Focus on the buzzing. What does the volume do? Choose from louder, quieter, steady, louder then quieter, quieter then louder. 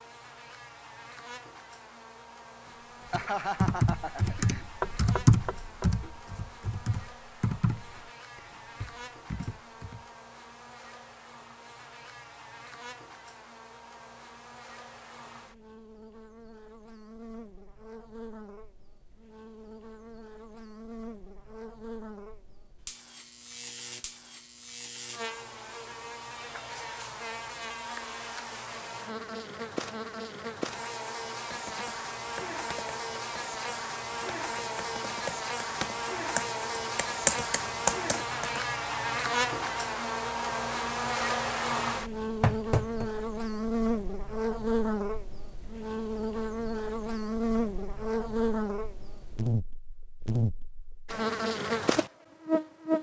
louder.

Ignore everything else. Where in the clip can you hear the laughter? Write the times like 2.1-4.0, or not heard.
3.1-4.7.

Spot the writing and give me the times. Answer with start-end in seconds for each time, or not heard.
not heard.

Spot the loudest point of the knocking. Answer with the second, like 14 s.
43 s.